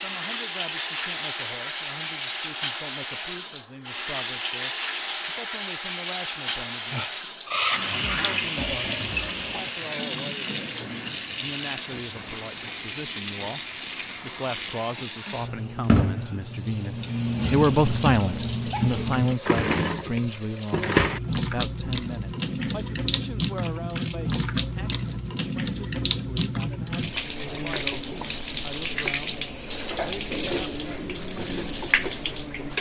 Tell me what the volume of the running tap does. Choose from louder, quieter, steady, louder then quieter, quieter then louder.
steady.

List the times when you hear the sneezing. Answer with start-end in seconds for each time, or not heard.
6.9-7.8, 18.7-19.1.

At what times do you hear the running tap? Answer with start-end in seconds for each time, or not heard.
0.0-32.7.